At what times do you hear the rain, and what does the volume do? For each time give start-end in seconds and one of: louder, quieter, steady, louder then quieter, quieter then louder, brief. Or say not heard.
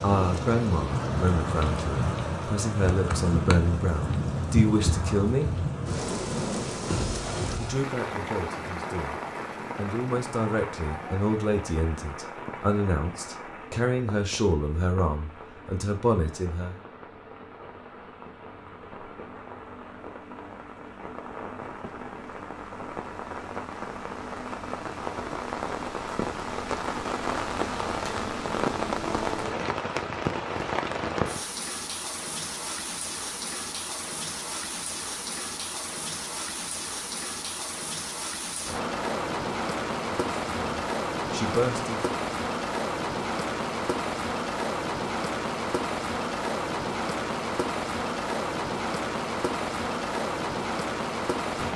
0.0-51.7 quieter then louder.